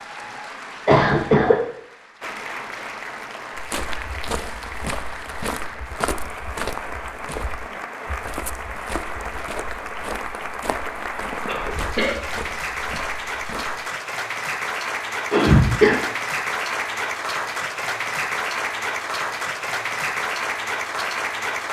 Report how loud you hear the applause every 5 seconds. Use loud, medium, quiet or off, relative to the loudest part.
medium, medium, loud, loud, loud.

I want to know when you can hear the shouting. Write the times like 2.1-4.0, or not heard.
not heard.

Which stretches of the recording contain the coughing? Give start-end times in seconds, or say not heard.
0.8-1.6, 11.4-12.2, 15.3-15.9.